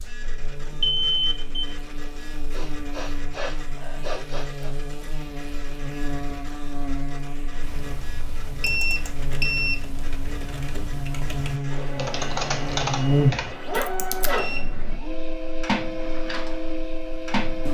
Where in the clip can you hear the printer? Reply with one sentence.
You can hear the printer from 0.0 to 17.7 s.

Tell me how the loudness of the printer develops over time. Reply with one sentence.
The loudness of the printer goes up.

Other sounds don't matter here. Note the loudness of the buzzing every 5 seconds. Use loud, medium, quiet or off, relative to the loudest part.
quiet, medium, loud, quiet.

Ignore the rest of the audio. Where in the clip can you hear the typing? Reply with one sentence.
You can hear the typing from 7.6 to 14.4 s.